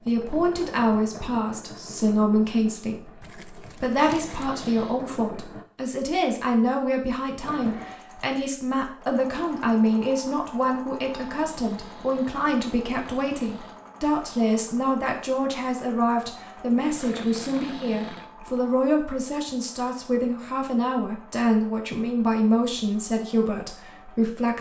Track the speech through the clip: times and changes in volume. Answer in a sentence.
You can hear the speech from 0.1 to 24.5 s, at a steady volume.